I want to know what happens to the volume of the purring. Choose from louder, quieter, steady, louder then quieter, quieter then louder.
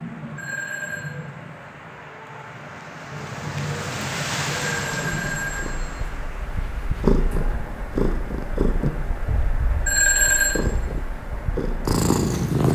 quieter then louder.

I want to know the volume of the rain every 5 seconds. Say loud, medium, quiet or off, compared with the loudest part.
loud, medium, medium.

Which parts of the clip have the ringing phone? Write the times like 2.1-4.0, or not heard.
0.3-1.1, 4.6-6.0, 9.8-10.6.